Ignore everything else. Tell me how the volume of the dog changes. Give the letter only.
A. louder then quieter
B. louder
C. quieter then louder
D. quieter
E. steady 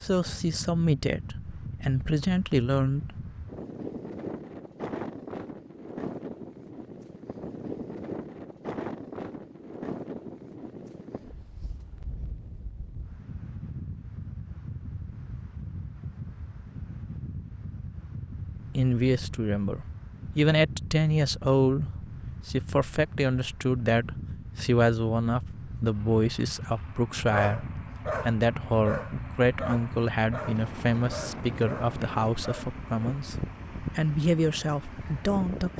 D.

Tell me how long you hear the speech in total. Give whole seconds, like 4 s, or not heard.
20 s.